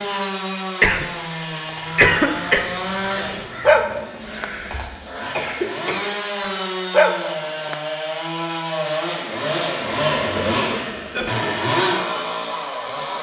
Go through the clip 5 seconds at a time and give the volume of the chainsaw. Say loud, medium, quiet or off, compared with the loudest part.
medium, loud, loud.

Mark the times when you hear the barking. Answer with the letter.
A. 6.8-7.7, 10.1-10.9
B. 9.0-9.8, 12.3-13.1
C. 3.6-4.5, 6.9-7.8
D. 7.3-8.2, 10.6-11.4
C.